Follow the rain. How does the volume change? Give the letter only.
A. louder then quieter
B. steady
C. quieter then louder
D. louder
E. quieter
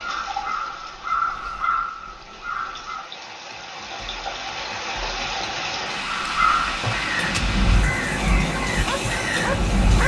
D.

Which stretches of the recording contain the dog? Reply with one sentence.
You can hear the dog from 8.8 to 10.0 s.